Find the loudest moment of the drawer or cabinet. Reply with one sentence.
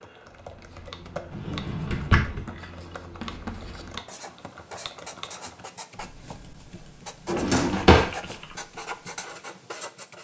The volume of the drawer or cabinet peaks at 8 seconds.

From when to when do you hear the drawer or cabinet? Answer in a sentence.
The drawer or cabinet can be heard from 1.3 to 2.5 s and from 7.2 to 8.1 s.